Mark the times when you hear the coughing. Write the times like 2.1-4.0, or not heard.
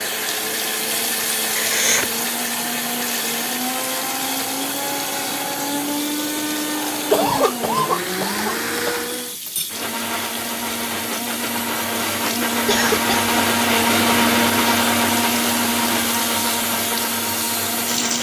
1.6-2.1, 7.1-8.9, 12.7-13.3.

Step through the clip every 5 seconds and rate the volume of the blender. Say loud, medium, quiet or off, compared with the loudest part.
medium, medium, loud, loud.